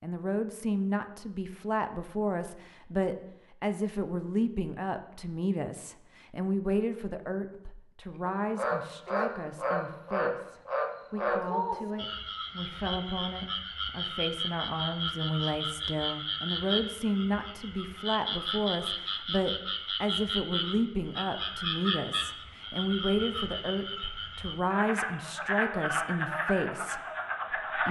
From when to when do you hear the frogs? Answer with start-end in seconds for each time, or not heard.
8.2-27.8.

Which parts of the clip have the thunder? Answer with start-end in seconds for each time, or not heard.
not heard.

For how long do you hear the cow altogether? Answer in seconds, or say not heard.
not heard.